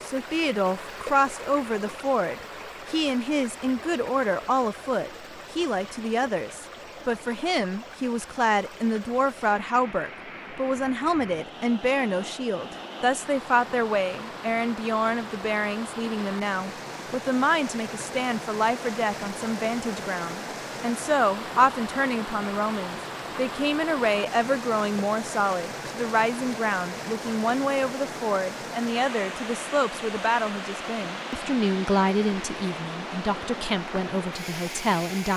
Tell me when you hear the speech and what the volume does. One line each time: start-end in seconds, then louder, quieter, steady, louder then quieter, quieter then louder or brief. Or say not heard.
0.0-35.3 steady.